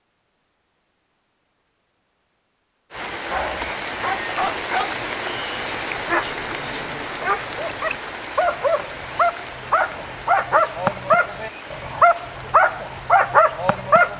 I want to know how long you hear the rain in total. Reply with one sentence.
The rain can be heard for 11 seconds in total.